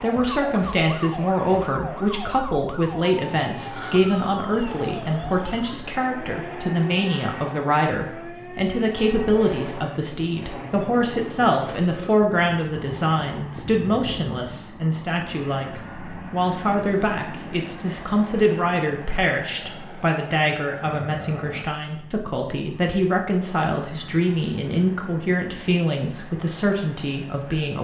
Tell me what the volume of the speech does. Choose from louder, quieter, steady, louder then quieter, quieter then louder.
steady.